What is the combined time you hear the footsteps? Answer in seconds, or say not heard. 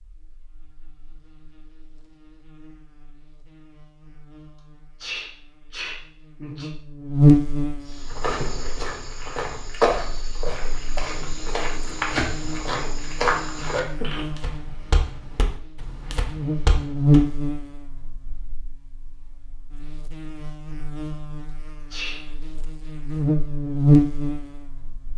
9 s.